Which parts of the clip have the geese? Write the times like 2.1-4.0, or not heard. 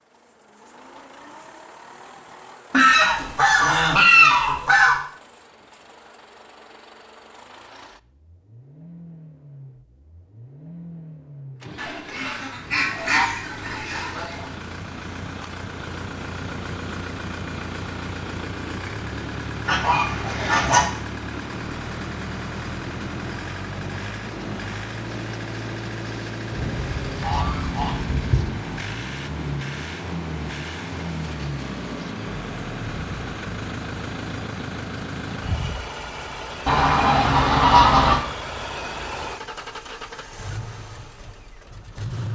2.7-5.0, 11.8-14.4, 19.6-20.8, 26.5-28.5, 36.6-38.2.